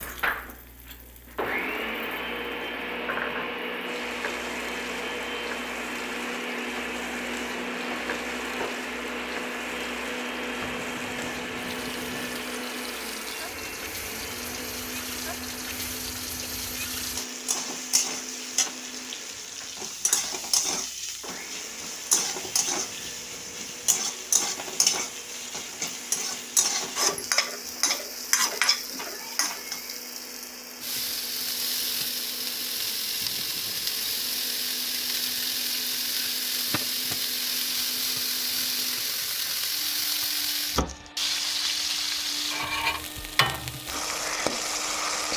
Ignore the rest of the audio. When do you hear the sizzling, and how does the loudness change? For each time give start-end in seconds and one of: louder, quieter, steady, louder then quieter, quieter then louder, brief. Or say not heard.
0.0-45.3 louder.